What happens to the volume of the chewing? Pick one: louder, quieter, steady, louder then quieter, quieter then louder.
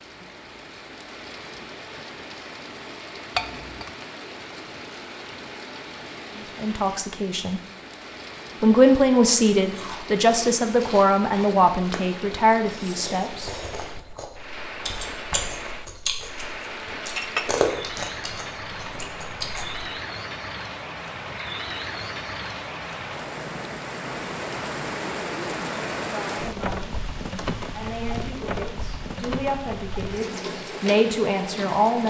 louder.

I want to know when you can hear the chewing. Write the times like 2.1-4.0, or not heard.
9.7-19.9.